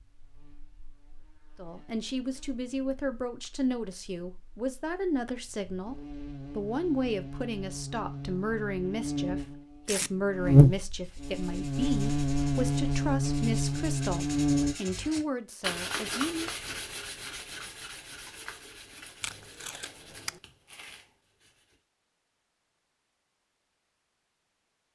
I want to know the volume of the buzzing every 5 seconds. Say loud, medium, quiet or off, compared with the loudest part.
quiet, quiet, loud, off, off.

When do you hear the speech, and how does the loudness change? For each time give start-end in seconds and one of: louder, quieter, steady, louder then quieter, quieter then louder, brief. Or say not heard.
1.6-16.5 steady.